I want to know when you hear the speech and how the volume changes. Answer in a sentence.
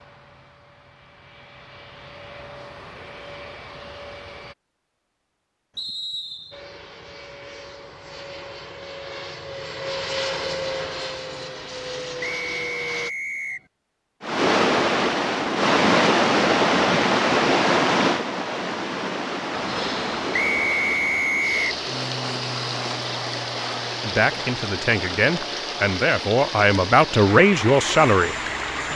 You can hear the speech from 24.0 to 28.9 s, getting louder.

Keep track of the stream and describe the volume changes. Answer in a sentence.
The loudness of the stream goes down.